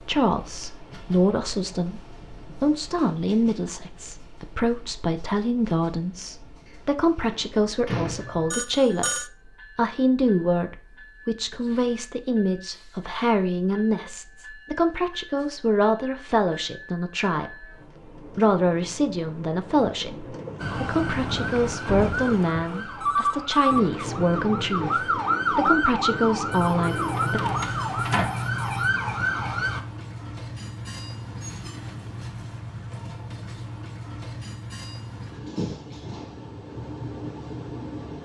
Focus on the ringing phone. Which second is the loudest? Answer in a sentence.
The volume of the ringing phone peaks at 23 seconds.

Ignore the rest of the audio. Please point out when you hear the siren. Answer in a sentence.
The siren can be heard from 20.6 to 29.8 s.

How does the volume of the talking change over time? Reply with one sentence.
The volume of the talking stays about the same.